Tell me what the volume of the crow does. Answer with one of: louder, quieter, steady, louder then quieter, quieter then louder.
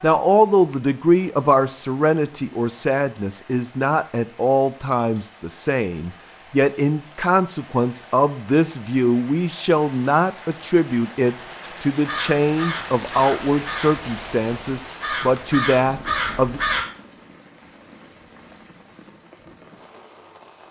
quieter then louder.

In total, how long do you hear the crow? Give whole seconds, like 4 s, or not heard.
5 s.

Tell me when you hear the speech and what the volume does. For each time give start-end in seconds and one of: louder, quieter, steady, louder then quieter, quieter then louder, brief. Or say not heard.
0.0-16.6 steady.